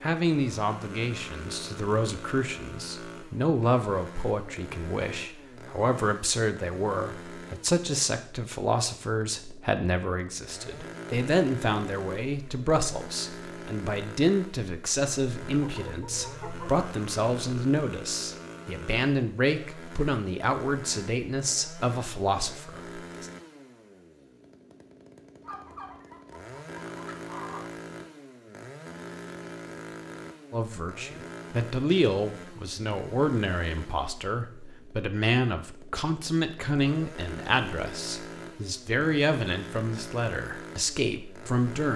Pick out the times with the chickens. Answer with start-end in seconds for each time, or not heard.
15.6-16.9, 25.4-27.6.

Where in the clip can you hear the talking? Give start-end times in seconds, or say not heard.
0.0-23.3, 30.5-41.9.